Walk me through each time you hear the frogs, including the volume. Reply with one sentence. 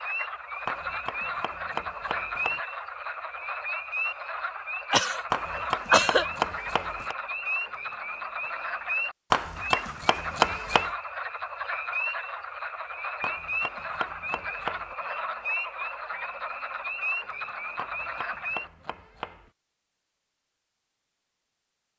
The frogs can be heard from 0.0 to 18.7 s, at a steady volume.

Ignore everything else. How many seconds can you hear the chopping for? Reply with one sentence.
You can hear the chopping for 9 seconds altogether.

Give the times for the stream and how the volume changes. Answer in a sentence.
You can't hear the stream here.